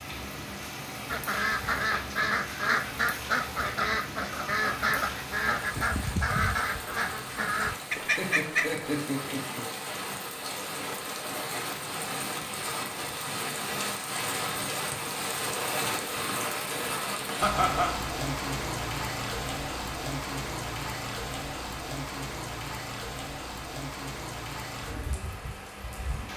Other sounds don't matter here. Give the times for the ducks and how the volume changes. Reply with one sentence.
You can hear the ducks from 1.1 to 8.8 s, at a steady volume.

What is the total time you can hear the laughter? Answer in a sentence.
You can hear the laughter for 2 seconds altogether.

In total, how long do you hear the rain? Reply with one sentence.
The rain can be heard for 26 seconds in total.